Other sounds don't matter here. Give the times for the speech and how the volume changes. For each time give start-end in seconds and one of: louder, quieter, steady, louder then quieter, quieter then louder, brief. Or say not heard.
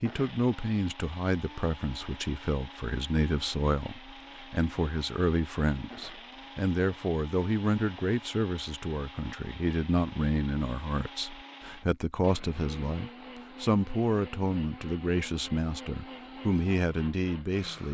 0.0-17.8 steady.